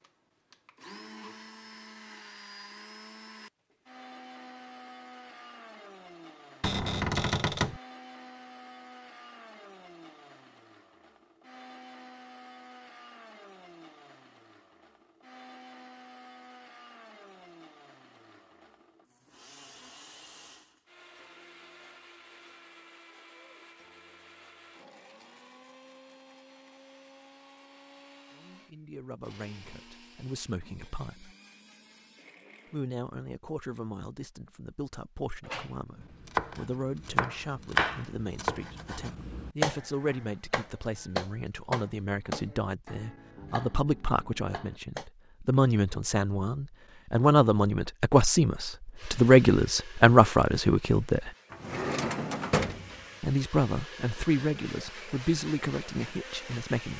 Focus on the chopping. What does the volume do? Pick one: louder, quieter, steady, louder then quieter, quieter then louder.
quieter.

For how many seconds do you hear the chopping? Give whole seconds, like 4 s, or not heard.
9 s.